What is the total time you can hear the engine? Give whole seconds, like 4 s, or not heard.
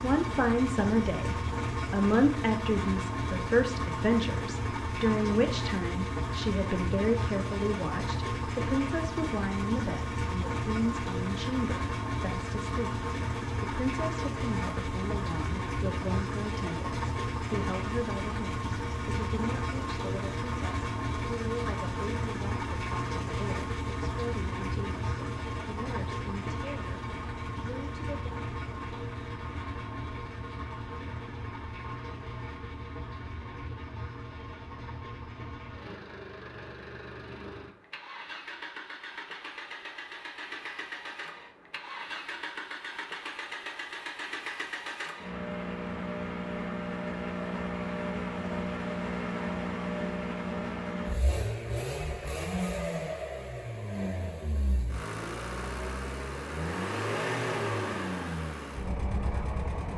60 s.